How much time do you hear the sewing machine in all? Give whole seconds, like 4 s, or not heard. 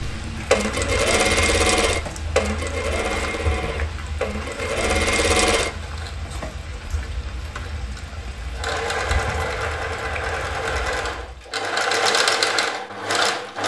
11 s.